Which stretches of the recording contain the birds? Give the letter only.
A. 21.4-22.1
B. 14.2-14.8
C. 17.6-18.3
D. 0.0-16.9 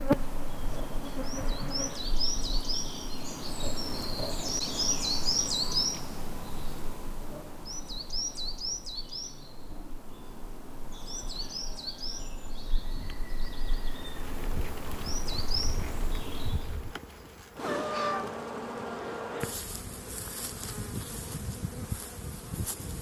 D.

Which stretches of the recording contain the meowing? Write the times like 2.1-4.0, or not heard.
17.6-18.3.